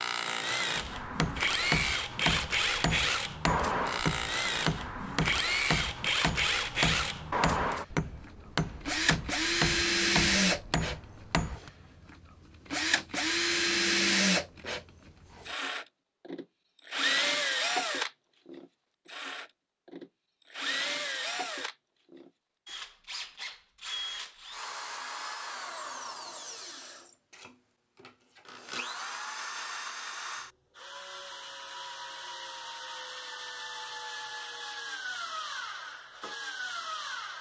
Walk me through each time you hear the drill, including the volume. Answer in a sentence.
You can hear the drill from 0.0 to 37.3 s, getting quieter.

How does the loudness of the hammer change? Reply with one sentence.
The volume of the hammer stays about the same.